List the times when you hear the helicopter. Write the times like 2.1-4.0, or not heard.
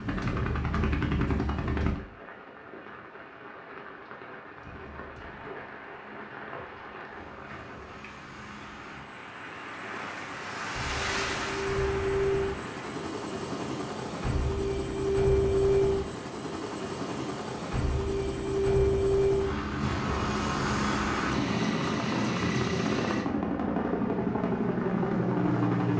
0.0-2.0, 4.5-25.9.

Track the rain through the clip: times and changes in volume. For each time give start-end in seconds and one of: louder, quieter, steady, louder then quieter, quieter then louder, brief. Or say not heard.
0.0-13.1 louder.